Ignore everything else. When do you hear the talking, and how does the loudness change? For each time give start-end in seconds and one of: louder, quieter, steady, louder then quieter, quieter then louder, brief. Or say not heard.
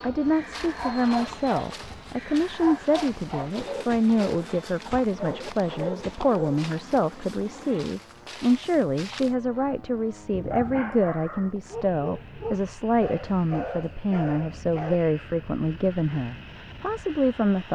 0.0-17.7 steady.